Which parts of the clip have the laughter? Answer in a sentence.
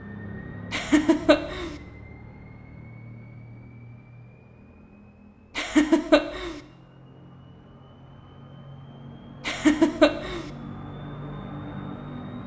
You can hear the laughter from 0.7 to 1.8 s, from 5.5 to 6.6 s and from 9.4 to 10.5 s.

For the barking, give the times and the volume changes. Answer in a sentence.
You can't hear the barking here.